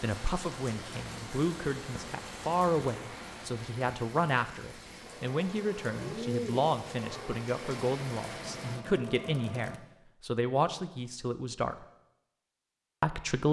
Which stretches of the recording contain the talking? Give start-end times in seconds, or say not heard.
0.0-11.8, 13.0-13.4.